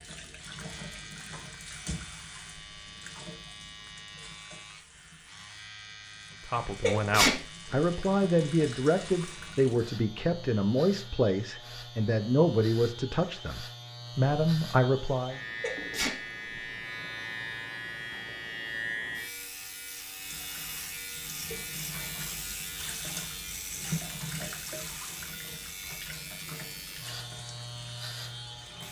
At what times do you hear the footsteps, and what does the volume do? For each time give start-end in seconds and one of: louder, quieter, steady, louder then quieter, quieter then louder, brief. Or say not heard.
not heard.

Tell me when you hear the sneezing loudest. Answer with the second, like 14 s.
7 s.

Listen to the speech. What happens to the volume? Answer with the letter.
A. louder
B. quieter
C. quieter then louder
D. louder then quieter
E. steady
E.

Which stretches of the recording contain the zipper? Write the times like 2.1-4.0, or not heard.
not heard.